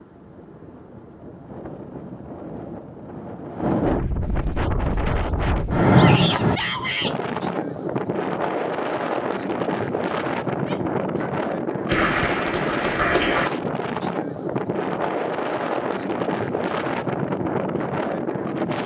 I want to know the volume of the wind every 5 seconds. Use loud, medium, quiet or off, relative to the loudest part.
medium, loud, loud, loud.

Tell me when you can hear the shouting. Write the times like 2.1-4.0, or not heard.
5.9-7.2, 10.6-11.2.